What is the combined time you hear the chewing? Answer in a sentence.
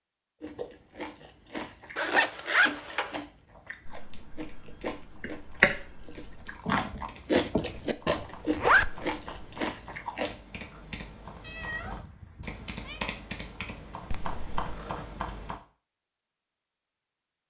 You can hear the chewing for 10 seconds altogether.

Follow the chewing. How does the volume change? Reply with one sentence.
The volume of the chewing goes up.